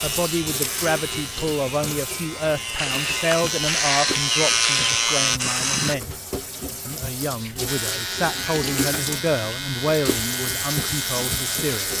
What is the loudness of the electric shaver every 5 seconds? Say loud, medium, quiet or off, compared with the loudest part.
loud, loud, medium.